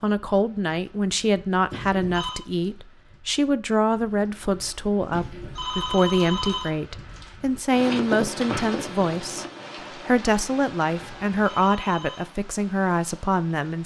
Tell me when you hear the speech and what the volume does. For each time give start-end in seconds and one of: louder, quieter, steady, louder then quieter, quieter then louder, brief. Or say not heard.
0.0-13.8 steady.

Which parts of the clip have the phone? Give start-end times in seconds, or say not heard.
1.7-2.4, 5.1-6.8, 11.0-12.2.